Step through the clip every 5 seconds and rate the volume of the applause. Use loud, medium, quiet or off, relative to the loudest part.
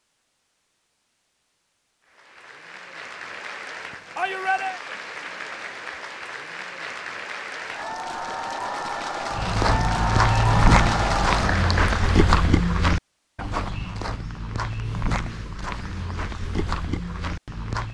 quiet, medium, loud, off.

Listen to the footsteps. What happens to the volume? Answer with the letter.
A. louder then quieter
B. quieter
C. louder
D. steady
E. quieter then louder
B.